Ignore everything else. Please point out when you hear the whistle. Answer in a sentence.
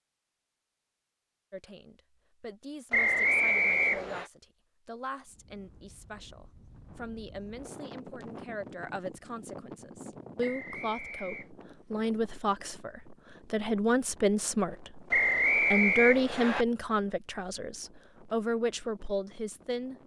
The whistle can be heard from 2.9 to 4.2 s, from 10.4 to 11.5 s and from 15.1 to 16.6 s.